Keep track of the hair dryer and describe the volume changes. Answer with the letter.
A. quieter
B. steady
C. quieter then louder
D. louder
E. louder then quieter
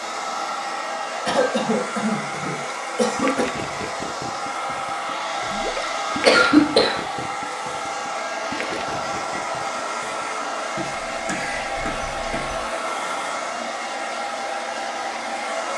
B.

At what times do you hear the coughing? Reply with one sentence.
The coughing can be heard from 1.2 to 3.6 s, from 6.2 to 7.0 s and from 10.8 to 12.6 s.